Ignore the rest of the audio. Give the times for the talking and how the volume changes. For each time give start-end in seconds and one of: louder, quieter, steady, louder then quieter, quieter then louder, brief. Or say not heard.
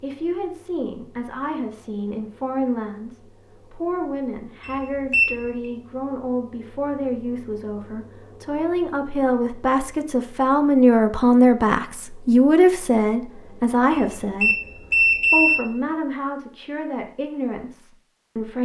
0.0-18.5 louder then quieter.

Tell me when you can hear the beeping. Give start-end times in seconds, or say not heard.
4.6-5.5, 13.9-15.6.